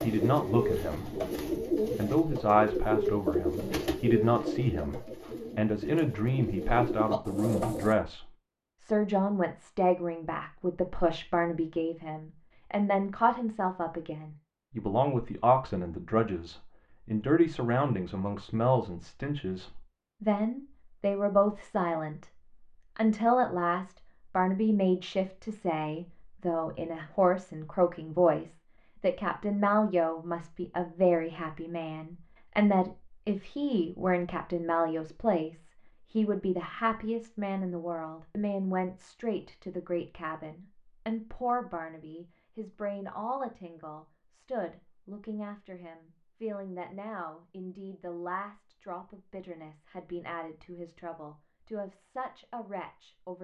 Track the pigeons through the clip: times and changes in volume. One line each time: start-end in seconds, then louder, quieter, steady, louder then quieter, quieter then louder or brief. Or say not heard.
0.0-8.0 quieter then louder.